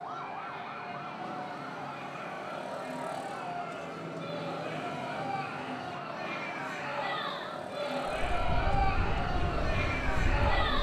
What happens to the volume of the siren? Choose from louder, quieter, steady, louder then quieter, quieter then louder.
steady.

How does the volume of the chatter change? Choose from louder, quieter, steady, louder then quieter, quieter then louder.
louder.